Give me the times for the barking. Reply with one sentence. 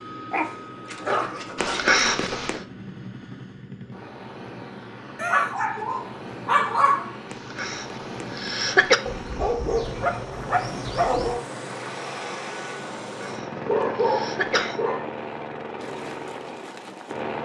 The barking can be heard from 0.3 to 2.6 s, from 5.2 to 7.2 s, from 9.1 to 11.4 s and from 13.7 to 15.1 s.